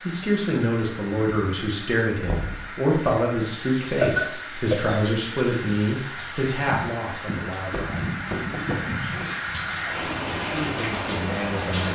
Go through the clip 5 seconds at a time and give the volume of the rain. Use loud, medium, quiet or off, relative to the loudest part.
medium, loud, loud.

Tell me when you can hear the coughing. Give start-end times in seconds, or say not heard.
3.9-5.0.